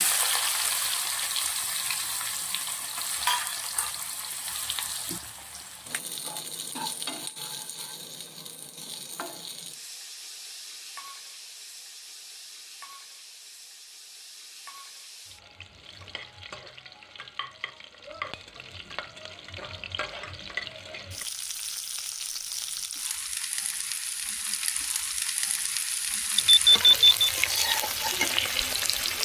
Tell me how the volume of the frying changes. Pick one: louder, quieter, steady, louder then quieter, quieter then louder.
quieter then louder.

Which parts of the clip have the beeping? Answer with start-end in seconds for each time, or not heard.
26.4-27.3.